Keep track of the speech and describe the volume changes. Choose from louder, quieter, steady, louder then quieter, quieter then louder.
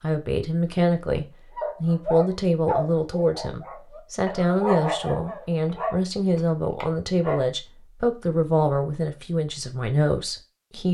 steady.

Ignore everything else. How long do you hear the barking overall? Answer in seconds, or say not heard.
6 s.